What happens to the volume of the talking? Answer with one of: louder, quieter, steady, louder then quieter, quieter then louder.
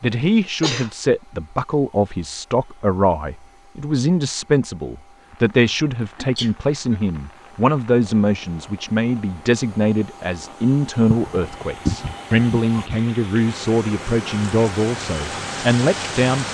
steady.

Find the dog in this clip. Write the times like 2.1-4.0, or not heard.
not heard.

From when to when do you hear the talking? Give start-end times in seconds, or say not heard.
0.0-16.4.